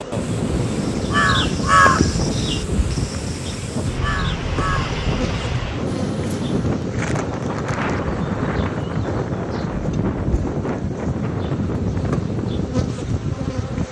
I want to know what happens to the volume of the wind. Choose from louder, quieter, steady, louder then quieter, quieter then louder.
steady.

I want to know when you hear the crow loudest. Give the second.
2 s.